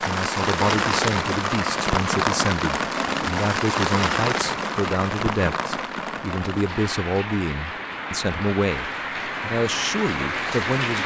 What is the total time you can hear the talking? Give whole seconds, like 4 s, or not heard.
11 s.